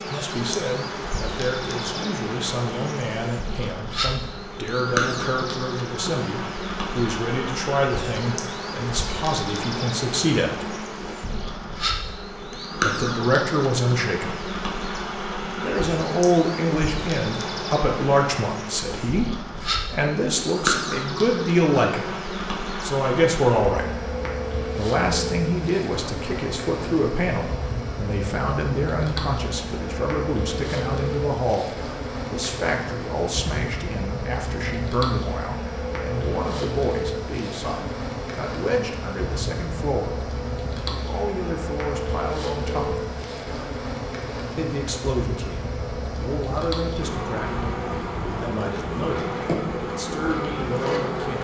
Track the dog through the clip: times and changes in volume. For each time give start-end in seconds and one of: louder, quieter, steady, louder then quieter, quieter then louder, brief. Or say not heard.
not heard.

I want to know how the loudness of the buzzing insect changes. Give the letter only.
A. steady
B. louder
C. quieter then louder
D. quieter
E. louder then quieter
A.